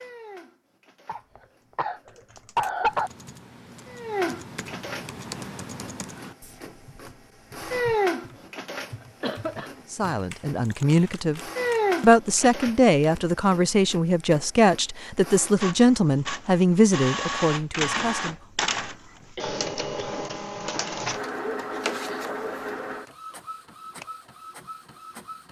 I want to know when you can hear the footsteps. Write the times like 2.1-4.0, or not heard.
not heard.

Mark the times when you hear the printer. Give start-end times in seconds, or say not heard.
0.0-25.4.